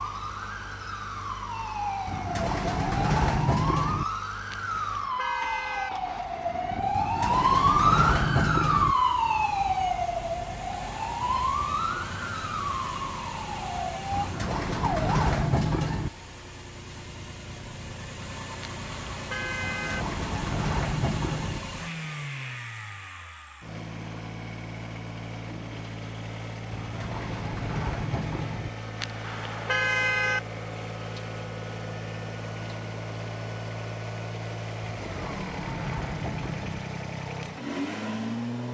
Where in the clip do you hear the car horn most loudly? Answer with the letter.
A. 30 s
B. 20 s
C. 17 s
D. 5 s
A.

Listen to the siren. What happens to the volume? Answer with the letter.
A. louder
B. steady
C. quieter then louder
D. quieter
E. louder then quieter
E.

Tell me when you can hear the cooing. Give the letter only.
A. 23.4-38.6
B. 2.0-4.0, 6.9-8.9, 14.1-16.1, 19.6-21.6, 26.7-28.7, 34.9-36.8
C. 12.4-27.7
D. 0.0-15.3
B.